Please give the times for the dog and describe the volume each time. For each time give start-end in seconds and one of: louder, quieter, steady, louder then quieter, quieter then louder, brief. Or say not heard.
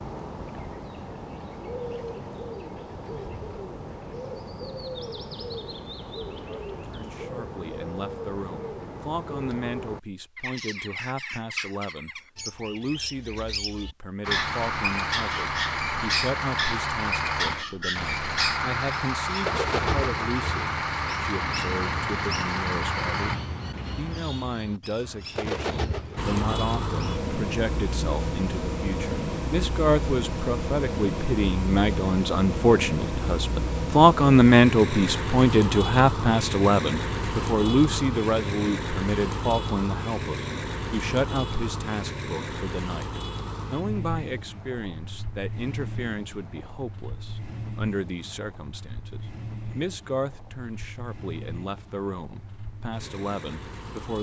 not heard.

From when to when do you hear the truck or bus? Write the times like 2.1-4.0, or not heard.
14.2-23.4, 26.1-54.1.